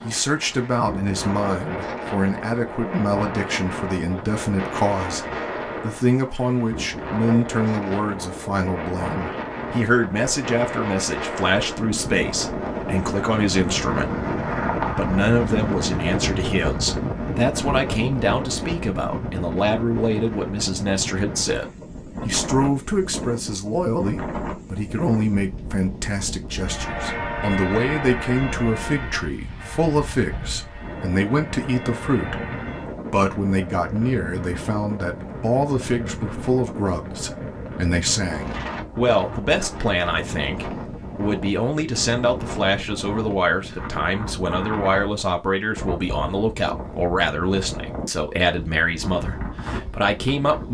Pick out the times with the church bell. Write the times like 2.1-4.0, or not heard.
26.5-33.0.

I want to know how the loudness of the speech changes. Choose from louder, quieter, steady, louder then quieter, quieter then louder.
steady.